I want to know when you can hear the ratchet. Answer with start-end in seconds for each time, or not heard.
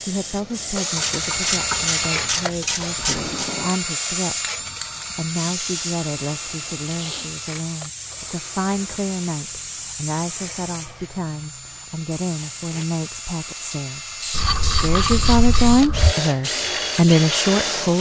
0.9-3.5, 14.3-16.1.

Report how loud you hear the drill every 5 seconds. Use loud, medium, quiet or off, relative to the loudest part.
loud, medium, medium, loud.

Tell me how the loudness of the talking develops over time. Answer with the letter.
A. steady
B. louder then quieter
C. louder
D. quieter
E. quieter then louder
C.